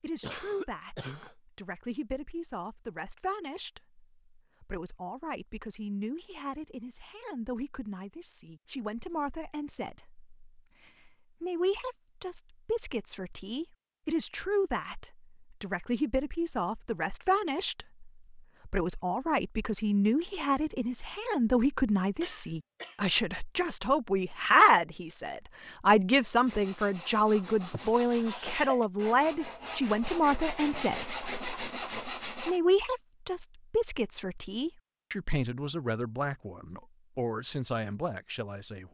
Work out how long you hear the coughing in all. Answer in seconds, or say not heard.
3 s.